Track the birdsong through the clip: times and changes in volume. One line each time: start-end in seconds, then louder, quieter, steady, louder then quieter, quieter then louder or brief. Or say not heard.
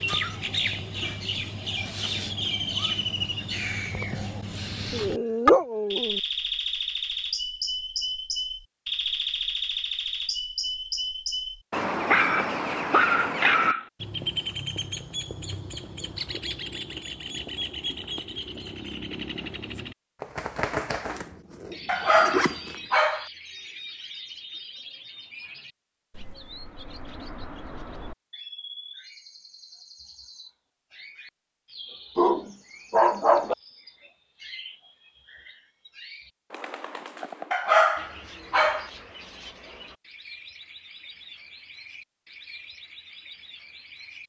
0.0-44.2 quieter.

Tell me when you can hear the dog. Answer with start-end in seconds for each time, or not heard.
4.9-6.2, 12.1-13.8, 21.9-23.2, 32.1-33.5, 37.5-38.9.